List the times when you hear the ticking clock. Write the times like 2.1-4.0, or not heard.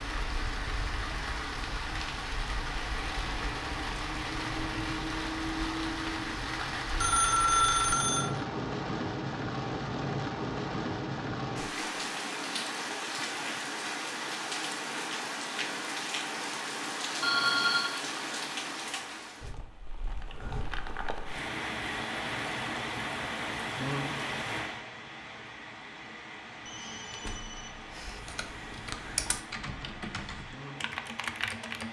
not heard.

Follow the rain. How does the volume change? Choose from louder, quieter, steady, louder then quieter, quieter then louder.
quieter.